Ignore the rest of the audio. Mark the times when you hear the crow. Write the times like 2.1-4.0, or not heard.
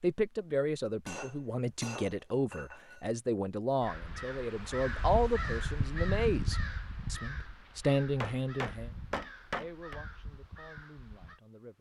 3.8-11.4.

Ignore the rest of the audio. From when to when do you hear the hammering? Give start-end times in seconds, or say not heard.
1.1-3.0, 8.2-10.0.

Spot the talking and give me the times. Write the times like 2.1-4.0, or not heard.
0.0-11.7.